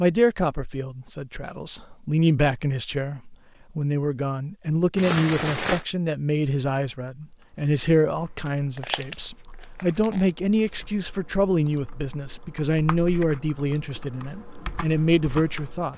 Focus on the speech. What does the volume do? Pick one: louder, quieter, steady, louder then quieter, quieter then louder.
steady.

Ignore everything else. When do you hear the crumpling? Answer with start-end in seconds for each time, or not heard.
5.0-5.8, 8.4-10.3.